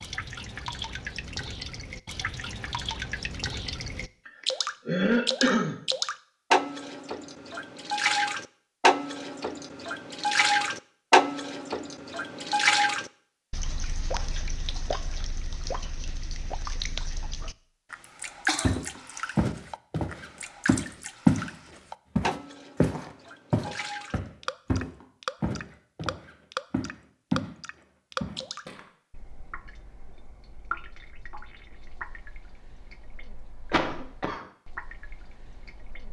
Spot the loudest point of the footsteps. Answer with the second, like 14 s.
21 s.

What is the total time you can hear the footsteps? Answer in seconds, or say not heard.
9 s.